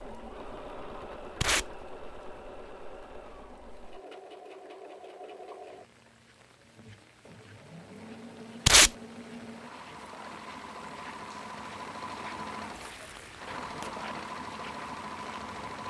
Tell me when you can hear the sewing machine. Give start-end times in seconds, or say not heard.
0.0-15.8.